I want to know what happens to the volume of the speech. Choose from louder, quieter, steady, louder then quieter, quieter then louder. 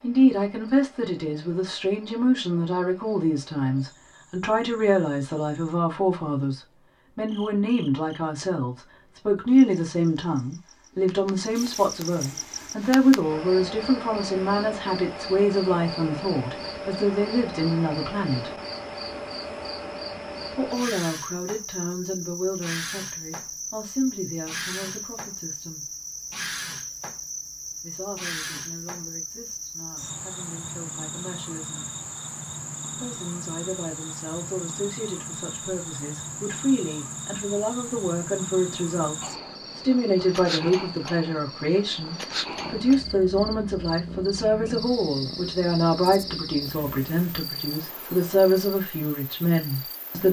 quieter then louder.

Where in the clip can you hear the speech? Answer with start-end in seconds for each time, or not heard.
0.0-18.6, 20.6-25.9, 27.8-31.9, 32.9-50.2.